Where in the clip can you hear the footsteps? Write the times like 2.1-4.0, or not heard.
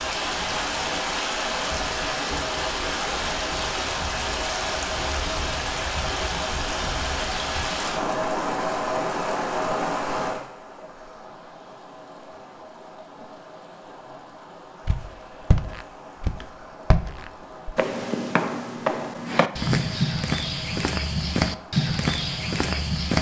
14.8-23.1.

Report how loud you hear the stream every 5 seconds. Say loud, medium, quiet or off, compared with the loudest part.
loud, loud, medium, quiet, quiet.